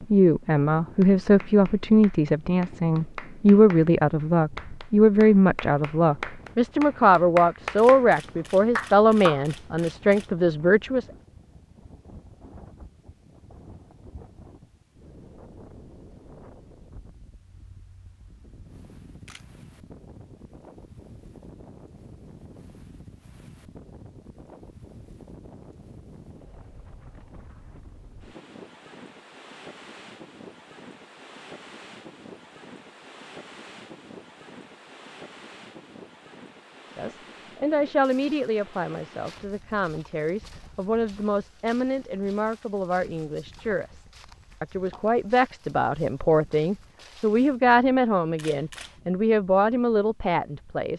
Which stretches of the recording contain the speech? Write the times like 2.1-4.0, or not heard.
0.0-11.1, 37.0-50.9.